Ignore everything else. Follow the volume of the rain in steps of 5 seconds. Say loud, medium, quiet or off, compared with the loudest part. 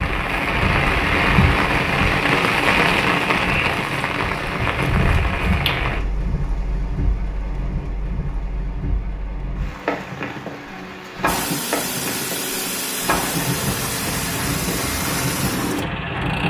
loud, medium, medium, medium.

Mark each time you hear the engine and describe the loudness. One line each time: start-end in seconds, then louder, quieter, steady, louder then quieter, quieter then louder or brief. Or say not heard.
11.2-16.4 steady.